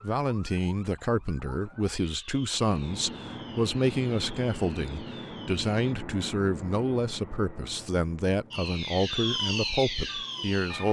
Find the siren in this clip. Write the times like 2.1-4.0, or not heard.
0.0-6.0, 8.5-10.8.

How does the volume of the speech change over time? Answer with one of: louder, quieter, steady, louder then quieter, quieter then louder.
steady.